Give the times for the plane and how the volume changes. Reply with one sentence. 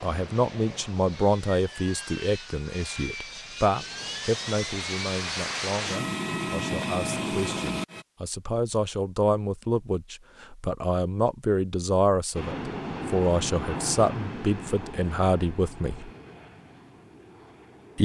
The plane can be heard from 0.0 to 8.1 s, getting louder; and from 12.3 to 18.0 s, getting quieter.